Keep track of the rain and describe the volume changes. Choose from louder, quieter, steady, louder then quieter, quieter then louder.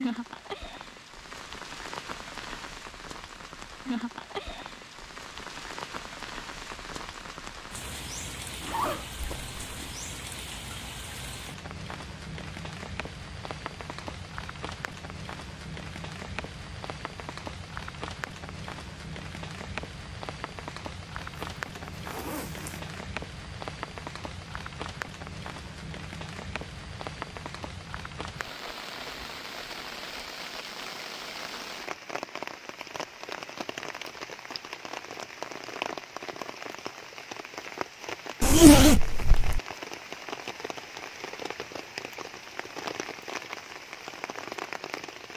steady.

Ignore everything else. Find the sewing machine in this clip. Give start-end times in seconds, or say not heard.
not heard.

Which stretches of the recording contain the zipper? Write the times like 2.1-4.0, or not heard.
8.6-9.9, 21.2-23.0, 38.4-39.6.